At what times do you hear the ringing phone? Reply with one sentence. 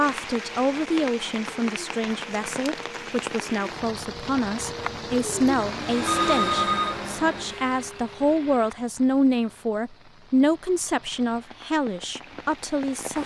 You can hear the ringing phone from 6.0 to 7.0 s.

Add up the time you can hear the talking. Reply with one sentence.
You can hear the talking for 13 seconds altogether.